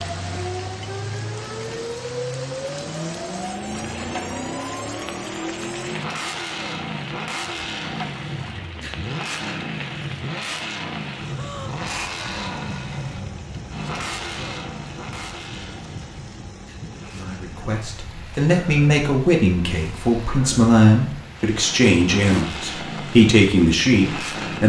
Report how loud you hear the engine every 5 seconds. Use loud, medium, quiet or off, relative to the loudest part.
loud, loud, loud, medium, loud.